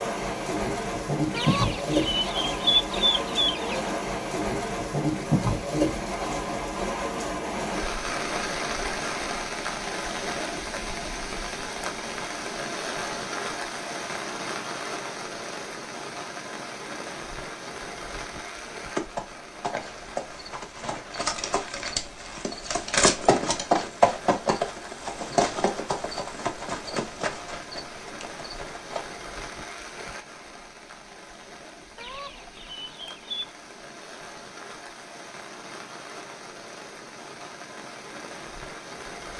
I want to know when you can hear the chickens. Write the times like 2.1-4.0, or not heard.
1.3-3.9, 31.9-33.5.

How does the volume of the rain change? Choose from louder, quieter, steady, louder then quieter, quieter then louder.
quieter.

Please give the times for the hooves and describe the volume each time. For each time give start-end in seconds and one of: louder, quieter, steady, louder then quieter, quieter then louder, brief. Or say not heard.
18.6-29.2 louder then quieter.